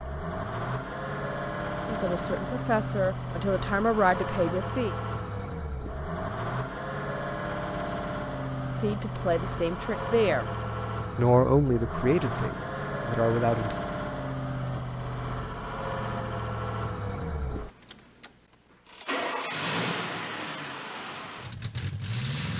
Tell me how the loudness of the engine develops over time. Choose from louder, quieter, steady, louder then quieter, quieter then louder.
steady.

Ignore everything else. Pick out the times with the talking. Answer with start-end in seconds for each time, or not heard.
1.9-5.0, 8.8-10.4, 11.2-13.8.